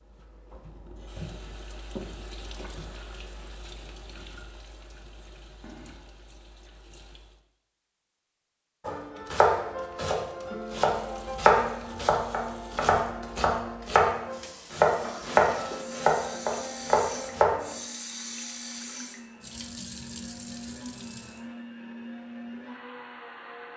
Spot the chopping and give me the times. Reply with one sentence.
The chopping can be heard from 8.8 to 17.8 s.